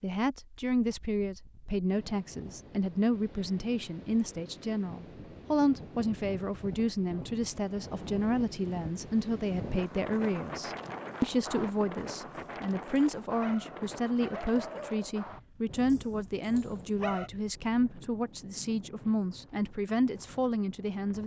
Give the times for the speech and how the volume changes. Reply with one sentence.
You can hear the speech from 0.0 to 21.2 s, at a steady volume.